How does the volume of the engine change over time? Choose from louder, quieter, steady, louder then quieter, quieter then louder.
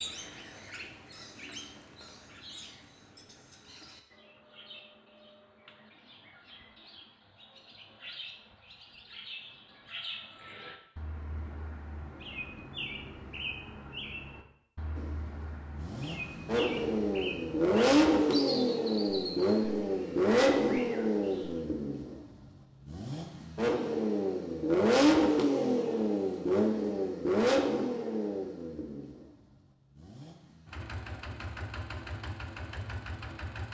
quieter.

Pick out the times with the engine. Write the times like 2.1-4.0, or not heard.
14.9-33.6.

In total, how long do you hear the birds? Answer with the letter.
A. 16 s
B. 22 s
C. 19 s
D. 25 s
B.